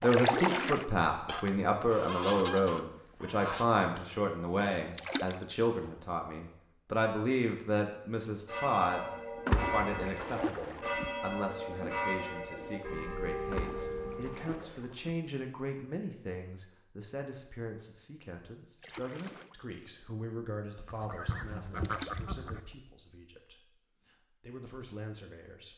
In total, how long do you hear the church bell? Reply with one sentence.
You can hear the church bell for 6 seconds altogether.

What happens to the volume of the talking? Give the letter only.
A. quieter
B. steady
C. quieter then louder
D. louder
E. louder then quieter
A.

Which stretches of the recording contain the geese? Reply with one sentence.
You can hear the geese from 1.2 to 3.6 s and from 20.9 to 22.6 s.